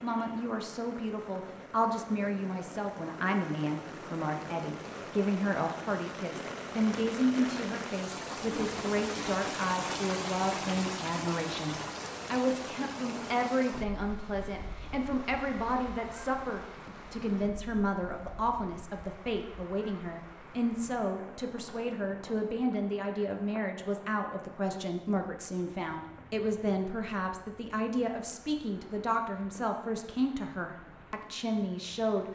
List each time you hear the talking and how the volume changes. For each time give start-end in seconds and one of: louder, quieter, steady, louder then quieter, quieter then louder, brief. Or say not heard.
0.0-32.2 steady.